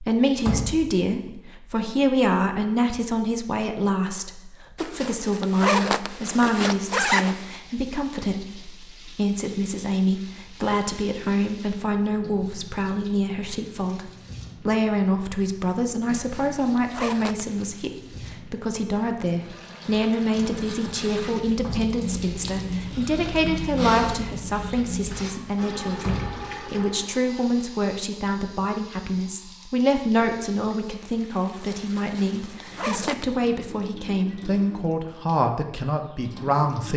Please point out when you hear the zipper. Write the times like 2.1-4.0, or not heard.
4.8-7.5, 16.1-17.7, 31.9-33.3.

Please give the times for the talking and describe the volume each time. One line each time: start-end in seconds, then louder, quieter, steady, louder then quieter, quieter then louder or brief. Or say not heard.
0.0-36.9 steady.